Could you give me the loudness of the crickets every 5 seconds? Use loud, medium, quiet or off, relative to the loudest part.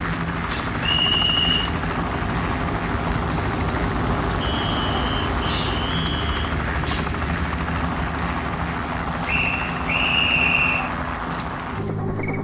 loud, loud, medium.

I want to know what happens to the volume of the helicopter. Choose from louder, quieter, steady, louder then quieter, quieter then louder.
steady.